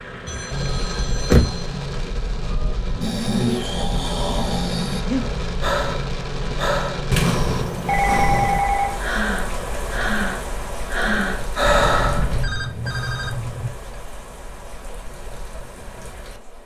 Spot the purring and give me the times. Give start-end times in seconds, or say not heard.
not heard.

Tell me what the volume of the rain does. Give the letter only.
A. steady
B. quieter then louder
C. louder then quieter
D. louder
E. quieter
E.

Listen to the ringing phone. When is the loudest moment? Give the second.
8 s.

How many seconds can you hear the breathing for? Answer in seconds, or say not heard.
10 s.